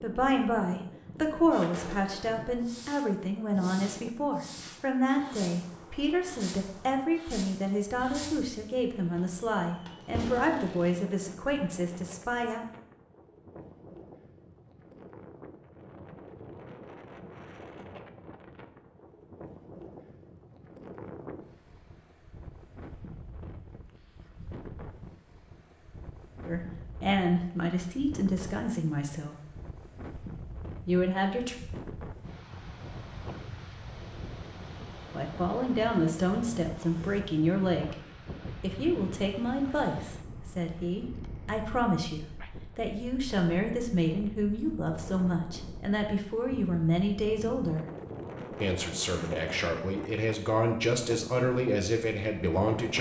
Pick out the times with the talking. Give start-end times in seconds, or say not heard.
0.0-12.6, 26.4-29.4, 30.9-31.6, 35.1-38.0, 38.6-47.9, 48.6-52.9.